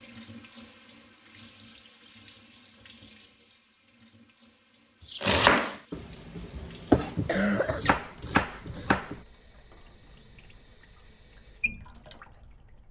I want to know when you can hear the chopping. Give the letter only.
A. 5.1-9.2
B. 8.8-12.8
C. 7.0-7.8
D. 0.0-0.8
A.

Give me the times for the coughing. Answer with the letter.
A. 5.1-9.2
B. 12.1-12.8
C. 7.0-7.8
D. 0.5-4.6
C.